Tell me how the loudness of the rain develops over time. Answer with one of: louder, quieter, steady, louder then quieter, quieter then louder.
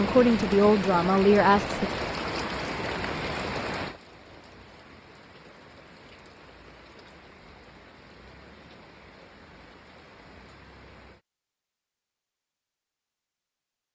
quieter.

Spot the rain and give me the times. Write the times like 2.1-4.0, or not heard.
0.0-11.2.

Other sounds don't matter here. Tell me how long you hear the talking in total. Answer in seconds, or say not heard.
2 s.